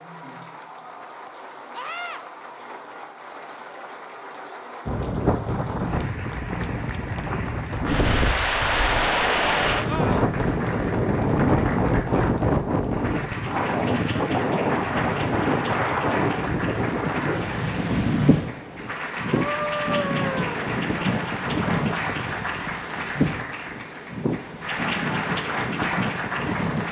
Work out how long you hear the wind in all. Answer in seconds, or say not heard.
22 s.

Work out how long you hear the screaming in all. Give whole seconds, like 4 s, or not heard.
2 s.